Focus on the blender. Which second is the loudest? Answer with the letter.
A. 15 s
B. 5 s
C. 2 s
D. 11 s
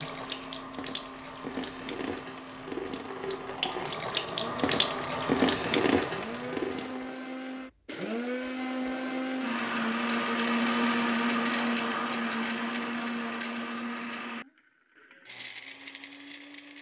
D.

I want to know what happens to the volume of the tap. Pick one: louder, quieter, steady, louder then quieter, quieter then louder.
louder.